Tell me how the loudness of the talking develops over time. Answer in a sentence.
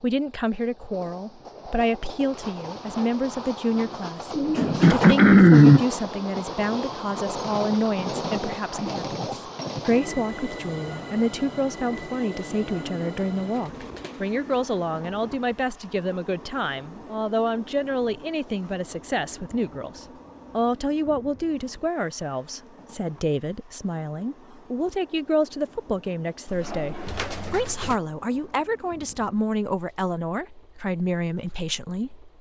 The loudness of the talking stays about the same.